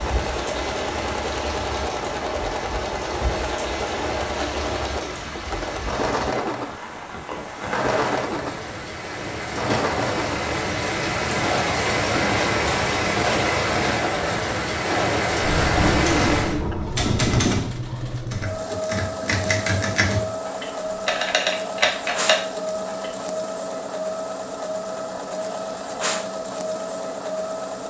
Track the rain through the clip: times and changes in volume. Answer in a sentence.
The rain can be heard from 0.0 to 16.6 s, getting louder.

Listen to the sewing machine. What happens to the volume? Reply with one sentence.
The volume of the sewing machine stays about the same.